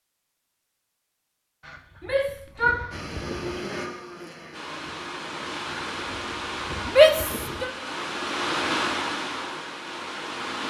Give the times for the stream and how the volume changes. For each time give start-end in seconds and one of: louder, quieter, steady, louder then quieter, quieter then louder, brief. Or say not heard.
4.5-10.6 louder then quieter.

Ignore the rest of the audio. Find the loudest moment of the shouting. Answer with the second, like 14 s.
7 s.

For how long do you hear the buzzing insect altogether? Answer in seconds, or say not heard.
2 s.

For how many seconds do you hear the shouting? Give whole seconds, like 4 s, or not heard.
2 s.